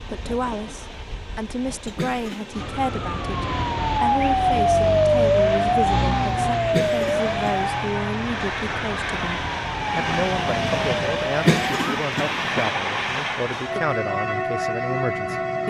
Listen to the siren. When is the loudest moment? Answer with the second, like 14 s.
5 s.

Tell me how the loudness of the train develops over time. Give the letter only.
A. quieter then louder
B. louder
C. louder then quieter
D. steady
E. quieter
B.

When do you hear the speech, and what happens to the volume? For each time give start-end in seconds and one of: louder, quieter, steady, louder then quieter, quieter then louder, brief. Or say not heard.
0.0-15.6 steady.